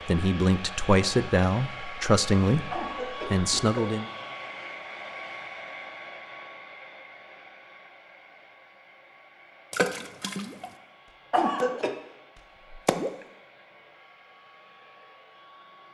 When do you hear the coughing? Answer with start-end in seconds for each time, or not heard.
2.7-3.8, 11.3-11.9.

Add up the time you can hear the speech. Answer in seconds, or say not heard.
4 s.